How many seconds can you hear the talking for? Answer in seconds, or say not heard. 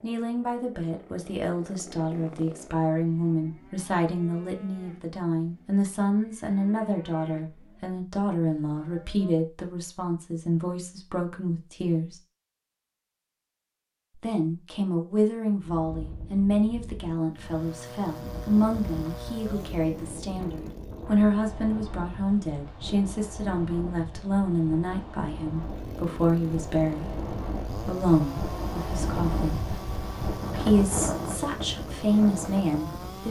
30 s.